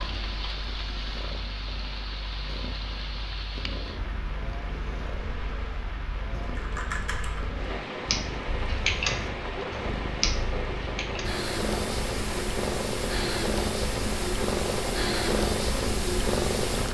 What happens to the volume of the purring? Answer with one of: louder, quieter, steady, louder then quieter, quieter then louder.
louder.